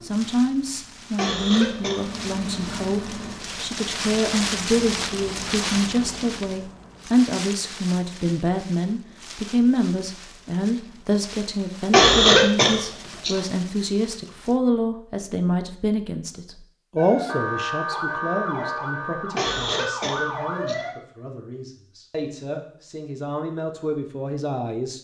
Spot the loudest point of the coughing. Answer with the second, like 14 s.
12 s.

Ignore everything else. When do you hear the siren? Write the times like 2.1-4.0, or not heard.
16.9-20.9.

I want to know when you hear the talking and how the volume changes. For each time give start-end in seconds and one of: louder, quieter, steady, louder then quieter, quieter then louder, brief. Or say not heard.
0.0-24.9 quieter.